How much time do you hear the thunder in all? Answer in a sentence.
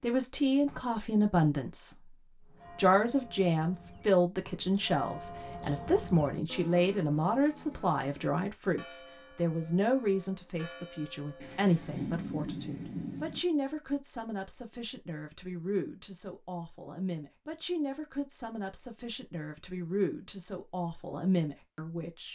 You can hear the thunder for 2 seconds altogether.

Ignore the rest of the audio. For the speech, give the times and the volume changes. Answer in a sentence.
The speech can be heard briefly from 0.0 to 1.9 s; and from 2.8 to 22.2 s, getting quieter.